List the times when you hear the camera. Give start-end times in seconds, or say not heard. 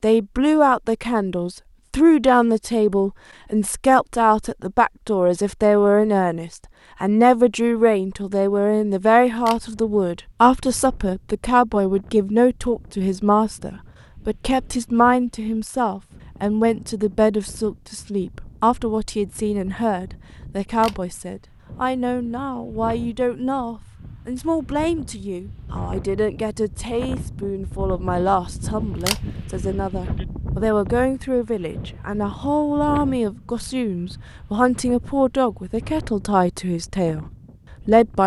9.3-9.8, 20.7-21.1, 28.9-29.4.